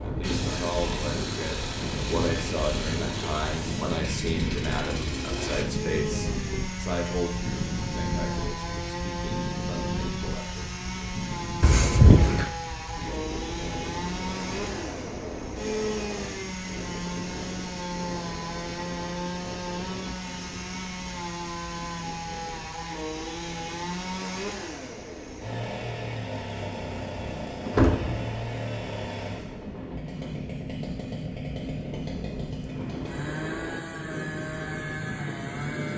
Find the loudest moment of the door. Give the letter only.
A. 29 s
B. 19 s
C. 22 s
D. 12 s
D.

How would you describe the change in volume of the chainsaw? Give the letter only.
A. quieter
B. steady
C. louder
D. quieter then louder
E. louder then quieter
B.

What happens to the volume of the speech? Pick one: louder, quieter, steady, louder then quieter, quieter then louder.
quieter.